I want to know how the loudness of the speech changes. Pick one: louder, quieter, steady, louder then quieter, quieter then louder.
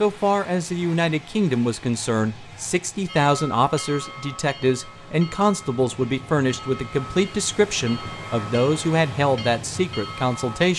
steady.